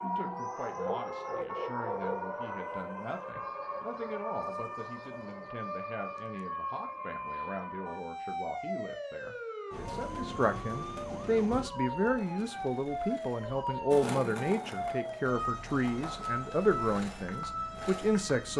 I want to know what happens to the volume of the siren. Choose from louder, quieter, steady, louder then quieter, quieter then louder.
steady.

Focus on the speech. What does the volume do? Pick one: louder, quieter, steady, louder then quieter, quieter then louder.
louder.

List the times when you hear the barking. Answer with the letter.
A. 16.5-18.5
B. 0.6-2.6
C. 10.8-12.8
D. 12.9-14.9
B.